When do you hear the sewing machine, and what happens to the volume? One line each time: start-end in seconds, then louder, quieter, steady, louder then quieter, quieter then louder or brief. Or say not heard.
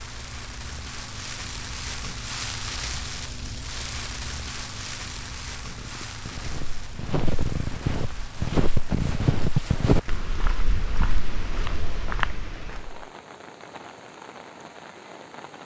not heard.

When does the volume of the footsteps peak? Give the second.
9 s.